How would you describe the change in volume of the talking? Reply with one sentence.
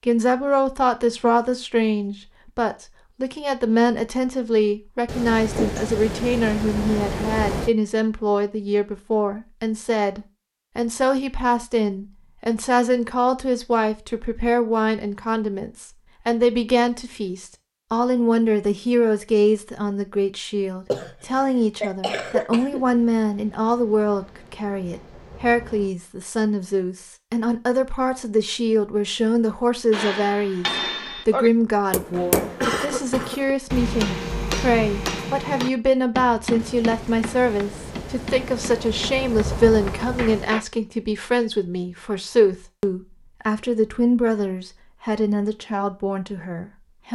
The volume of the talking stays about the same.